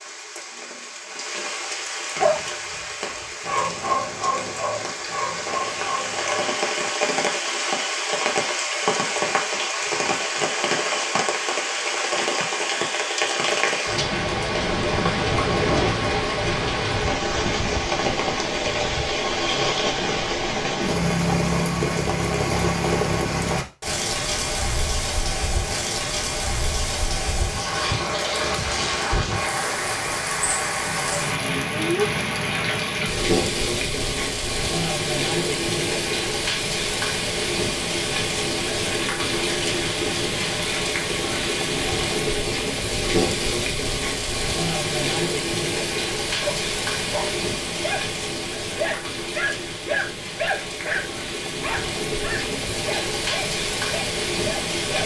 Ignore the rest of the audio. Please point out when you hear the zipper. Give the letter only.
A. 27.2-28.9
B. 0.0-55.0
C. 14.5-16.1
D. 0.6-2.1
C.